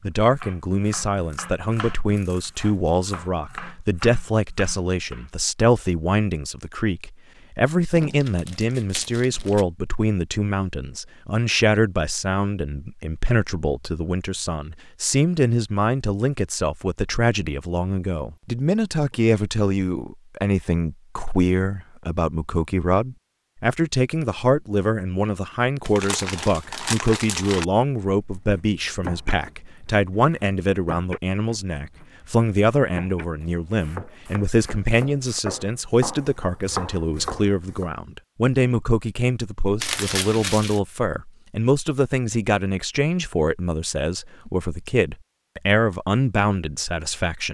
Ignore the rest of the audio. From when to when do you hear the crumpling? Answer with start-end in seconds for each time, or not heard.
8.0-9.7, 25.9-27.6, 39.8-40.8.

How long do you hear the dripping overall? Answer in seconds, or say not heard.
not heard.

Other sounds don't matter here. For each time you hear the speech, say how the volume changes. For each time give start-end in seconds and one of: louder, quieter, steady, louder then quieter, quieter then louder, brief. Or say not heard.
0.0-47.4 steady.